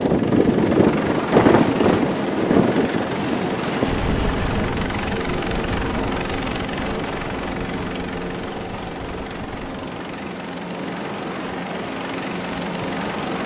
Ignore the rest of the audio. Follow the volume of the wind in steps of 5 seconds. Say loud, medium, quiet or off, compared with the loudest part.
loud, quiet, quiet.